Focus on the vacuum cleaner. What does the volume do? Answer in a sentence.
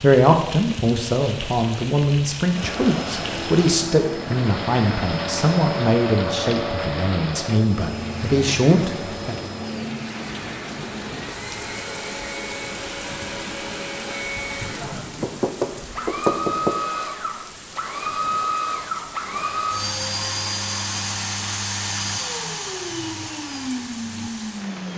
The loudness of the vacuum cleaner goes down, then up.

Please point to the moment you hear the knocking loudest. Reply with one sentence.
The loudest moment of the knocking is at 16 seconds.